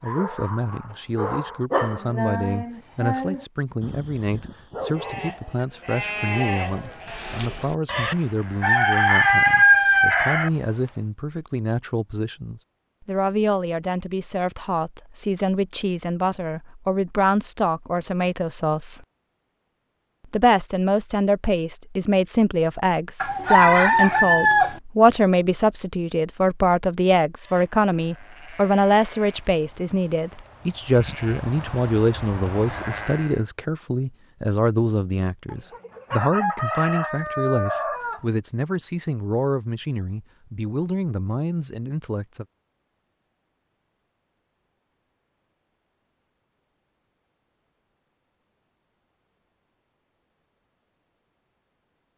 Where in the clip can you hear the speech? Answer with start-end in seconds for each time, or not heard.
0.0-19.0, 20.3-42.5.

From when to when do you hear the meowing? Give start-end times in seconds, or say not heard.
not heard.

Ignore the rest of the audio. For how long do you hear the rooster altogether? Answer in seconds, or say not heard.
6 s.